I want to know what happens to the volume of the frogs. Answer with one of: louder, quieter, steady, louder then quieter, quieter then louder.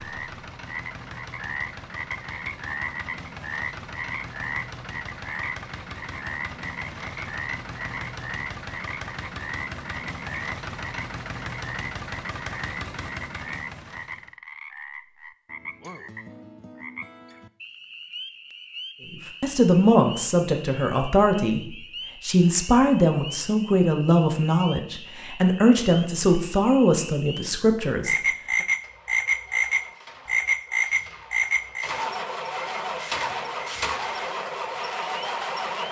quieter then louder.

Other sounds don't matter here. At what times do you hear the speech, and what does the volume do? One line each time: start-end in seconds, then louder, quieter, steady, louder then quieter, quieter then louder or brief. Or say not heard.
19.1-28.1 steady.